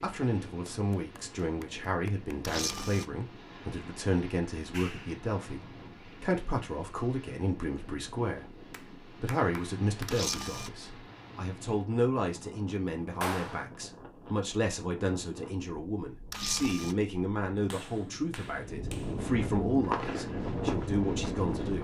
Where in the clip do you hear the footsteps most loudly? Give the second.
20 s.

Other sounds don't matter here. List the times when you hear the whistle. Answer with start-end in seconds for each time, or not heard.
not heard.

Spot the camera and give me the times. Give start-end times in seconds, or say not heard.
2.4-3.0, 10.1-10.7, 16.3-16.9.